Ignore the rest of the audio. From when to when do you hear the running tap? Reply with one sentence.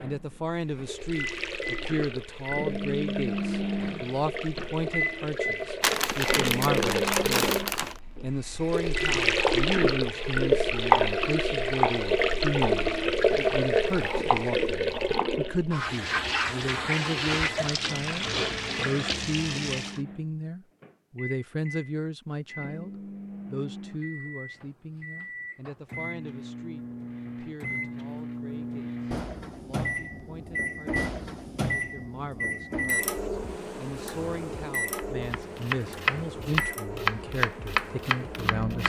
The running tap can be heard from 0.1 to 20.0 s.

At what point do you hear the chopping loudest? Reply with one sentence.
The loudest moment of the chopping is at 11 seconds.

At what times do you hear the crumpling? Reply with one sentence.
The crumpling can be heard from 5.8 to 8.0 s.